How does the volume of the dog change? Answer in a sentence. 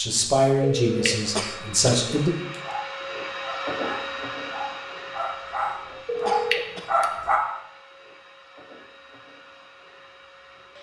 The volume of the dog goes up.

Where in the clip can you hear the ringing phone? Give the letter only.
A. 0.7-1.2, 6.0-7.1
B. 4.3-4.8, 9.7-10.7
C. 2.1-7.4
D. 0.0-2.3
A.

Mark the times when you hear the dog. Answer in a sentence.
You can hear the dog from 2.1 to 7.4 s.